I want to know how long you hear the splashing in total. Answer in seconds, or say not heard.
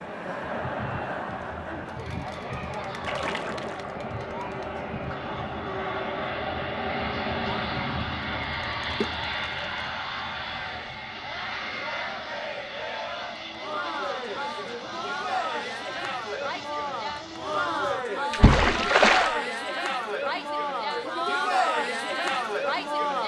3 s.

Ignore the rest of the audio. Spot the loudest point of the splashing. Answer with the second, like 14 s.
19 s.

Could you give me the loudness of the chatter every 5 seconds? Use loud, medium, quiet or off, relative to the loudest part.
medium, quiet, medium, loud, loud.